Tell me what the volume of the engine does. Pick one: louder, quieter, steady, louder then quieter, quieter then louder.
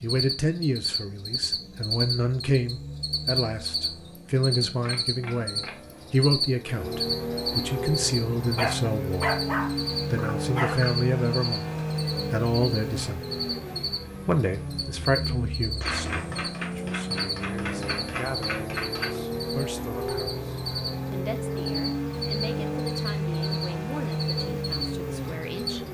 louder.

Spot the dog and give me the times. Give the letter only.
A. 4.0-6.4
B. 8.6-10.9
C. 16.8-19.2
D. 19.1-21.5
B.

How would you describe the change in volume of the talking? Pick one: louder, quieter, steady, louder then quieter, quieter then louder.
quieter.